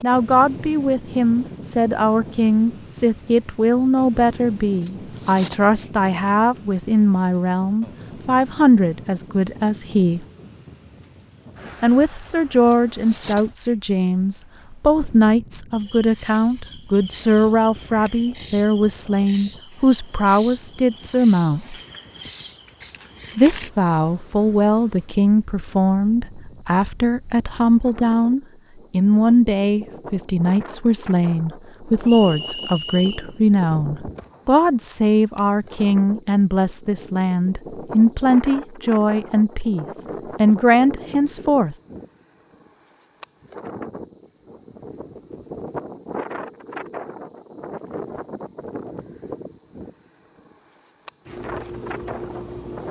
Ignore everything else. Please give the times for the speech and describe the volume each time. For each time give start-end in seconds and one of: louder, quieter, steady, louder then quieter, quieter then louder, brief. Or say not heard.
0.0-10.2 steady
11.8-21.8 steady
23.4-41.8 steady.